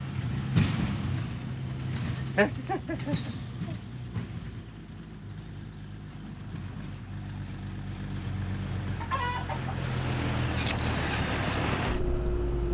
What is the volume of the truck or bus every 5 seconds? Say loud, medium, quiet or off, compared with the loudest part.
loud, medium, loud.